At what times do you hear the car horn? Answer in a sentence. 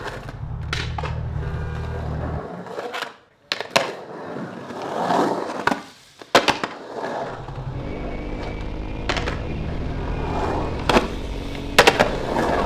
The car horn can be heard from 0.3 to 2.4 s and from 8.9 to 10.9 s.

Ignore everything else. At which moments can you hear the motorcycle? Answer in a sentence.
You can hear the motorcycle from 0.0 to 1.7 s and from 7.2 to 12.6 s.